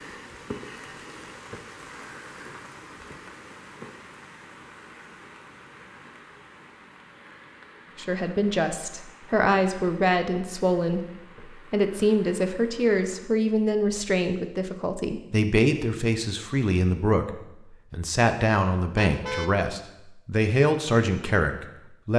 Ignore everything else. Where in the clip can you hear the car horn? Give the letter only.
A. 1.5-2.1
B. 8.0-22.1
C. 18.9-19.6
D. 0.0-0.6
C.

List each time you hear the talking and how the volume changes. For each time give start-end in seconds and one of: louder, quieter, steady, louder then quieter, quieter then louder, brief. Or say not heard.
8.0-22.1 steady.